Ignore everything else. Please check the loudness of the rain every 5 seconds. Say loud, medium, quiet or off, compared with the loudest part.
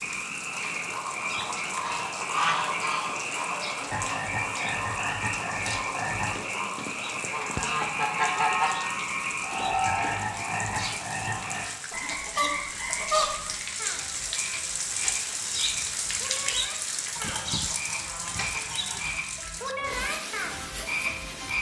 medium, medium, loud, loud, medium.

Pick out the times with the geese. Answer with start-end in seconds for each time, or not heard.
1.8-3.7, 6.3-8.8, 11.9-13.6, 17.1-19.1.